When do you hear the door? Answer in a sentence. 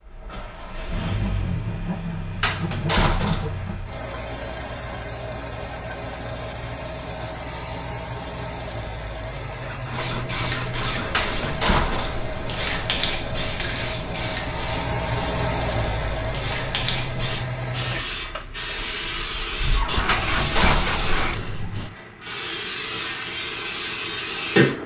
The door can be heard from 2.4 to 3.5 s, from 11.1 to 12.2 s and from 20.1 to 21.2 s.